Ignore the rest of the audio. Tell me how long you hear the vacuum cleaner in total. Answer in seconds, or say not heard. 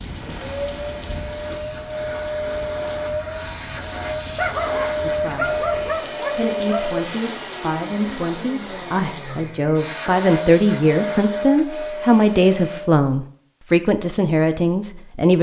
13 s.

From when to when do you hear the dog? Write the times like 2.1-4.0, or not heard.
4.3-7.0.